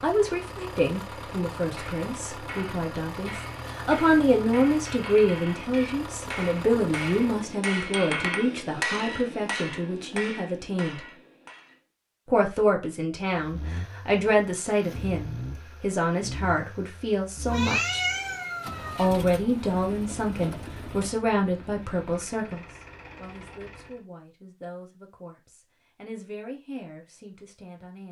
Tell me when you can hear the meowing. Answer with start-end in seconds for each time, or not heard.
17.4-19.1.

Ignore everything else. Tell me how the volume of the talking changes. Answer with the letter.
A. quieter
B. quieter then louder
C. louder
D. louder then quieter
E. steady
A.